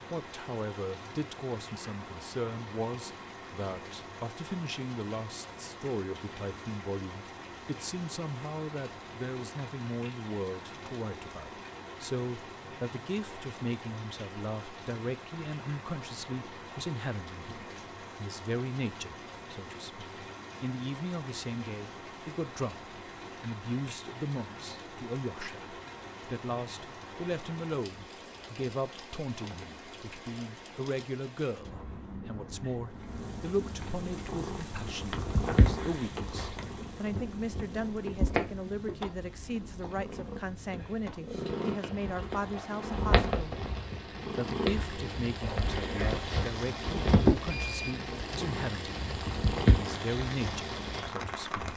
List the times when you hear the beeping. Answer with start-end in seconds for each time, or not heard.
47.5-48.0.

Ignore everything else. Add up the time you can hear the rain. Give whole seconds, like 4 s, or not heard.
52 s.